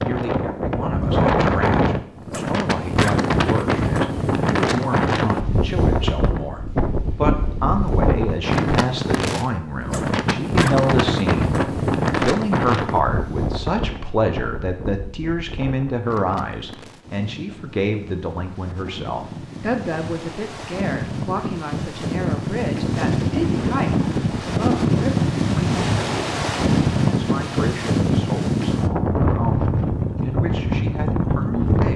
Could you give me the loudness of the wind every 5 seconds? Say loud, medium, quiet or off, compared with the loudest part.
loud, loud, loud, quiet, loud, loud, loud.